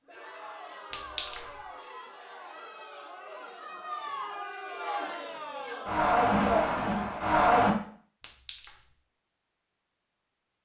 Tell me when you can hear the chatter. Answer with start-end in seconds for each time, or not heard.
0.1-7.8.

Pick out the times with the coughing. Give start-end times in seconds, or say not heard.
not heard.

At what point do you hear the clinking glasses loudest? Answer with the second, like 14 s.
1 s.